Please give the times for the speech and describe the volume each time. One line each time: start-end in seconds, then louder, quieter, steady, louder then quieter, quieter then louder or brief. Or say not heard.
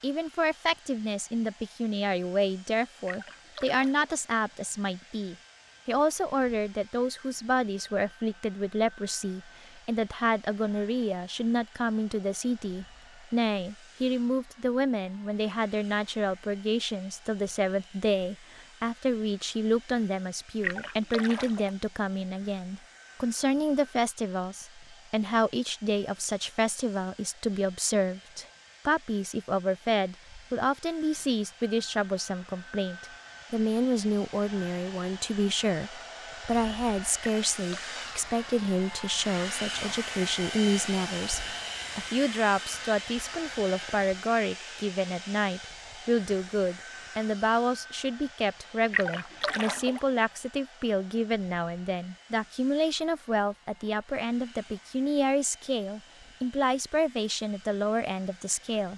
0.0-58.9 steady.